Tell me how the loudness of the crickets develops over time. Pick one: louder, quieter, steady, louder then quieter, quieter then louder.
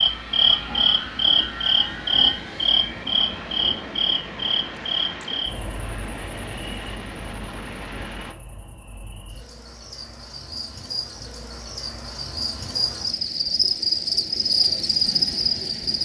quieter then louder.